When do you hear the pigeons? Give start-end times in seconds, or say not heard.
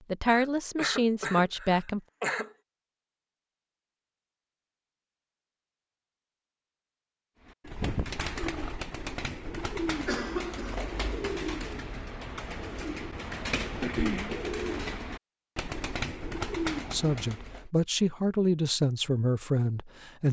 7.5-17.6.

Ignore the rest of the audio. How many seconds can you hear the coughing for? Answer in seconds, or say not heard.
4 s.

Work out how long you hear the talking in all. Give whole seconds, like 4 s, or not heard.
5 s.